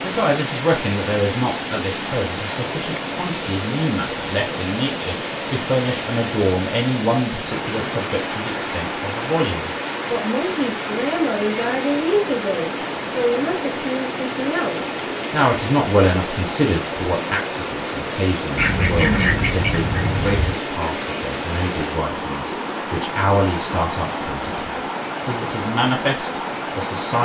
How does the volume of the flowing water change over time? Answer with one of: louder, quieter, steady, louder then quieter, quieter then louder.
steady.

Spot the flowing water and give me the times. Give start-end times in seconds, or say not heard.
0.0-27.2.